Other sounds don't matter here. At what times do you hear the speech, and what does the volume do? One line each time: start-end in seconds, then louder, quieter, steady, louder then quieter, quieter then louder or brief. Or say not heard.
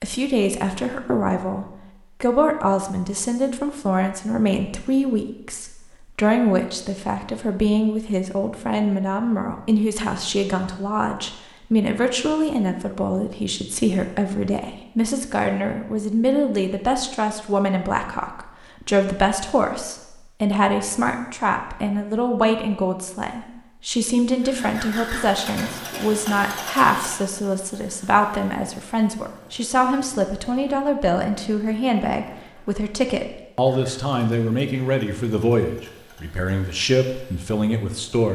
0.0-38.2 steady.